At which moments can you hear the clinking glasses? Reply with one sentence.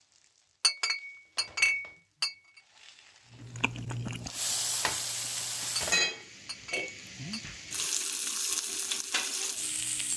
The clinking glasses can be heard from 0.6 to 2.4 s and from 5.8 to 7.5 s.